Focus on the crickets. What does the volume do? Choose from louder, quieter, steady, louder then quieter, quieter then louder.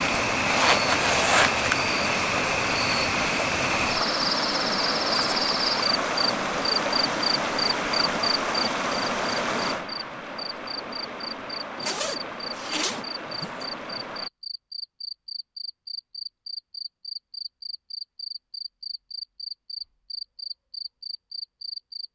quieter.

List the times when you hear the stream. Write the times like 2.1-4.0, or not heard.
0.0-14.3.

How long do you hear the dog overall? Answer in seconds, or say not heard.
not heard.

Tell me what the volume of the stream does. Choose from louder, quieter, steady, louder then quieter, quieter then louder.
quieter.